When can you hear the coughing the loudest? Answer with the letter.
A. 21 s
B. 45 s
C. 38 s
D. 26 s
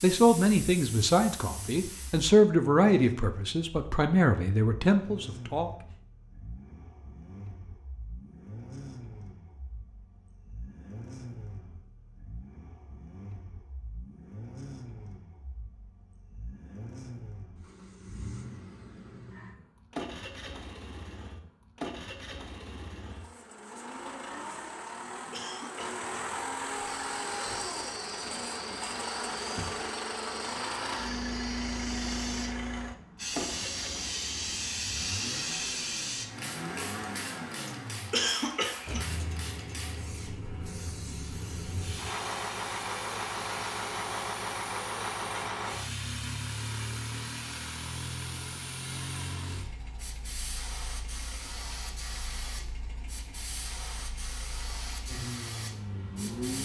C.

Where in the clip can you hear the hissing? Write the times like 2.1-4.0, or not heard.
0.0-2.3, 26.7-56.6.